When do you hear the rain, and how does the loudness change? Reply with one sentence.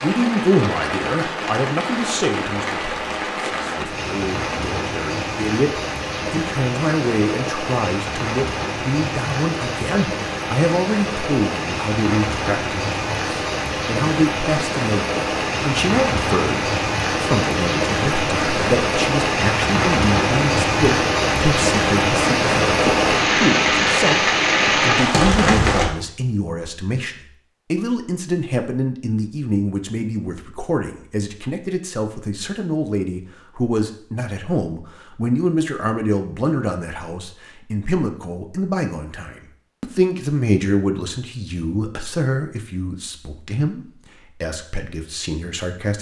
The rain can be heard from 0.0 to 25.9 s, getting louder.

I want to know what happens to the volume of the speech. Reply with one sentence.
The loudness of the speech stays about the same.